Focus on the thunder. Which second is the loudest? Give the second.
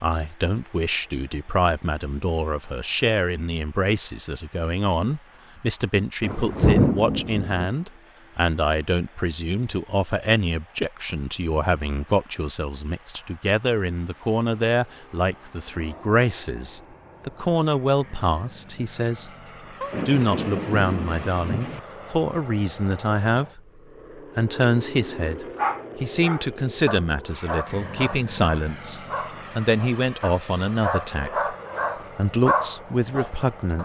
7 s.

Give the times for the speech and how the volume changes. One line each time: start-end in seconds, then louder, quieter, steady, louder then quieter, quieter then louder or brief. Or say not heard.
0.0-19.3 steady
20.1-31.5 steady
32.1-33.7 brief.